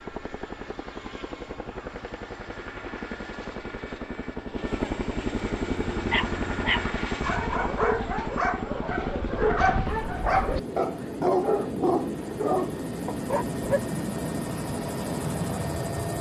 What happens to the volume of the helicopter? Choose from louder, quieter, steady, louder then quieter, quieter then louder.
louder.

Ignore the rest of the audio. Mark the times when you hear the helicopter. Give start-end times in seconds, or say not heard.
0.0-16.1.